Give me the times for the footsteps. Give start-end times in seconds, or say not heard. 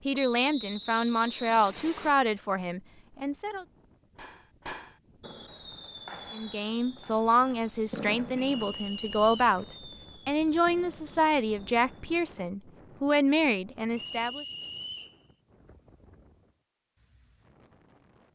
not heard.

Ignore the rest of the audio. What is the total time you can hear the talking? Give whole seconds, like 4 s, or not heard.
12 s.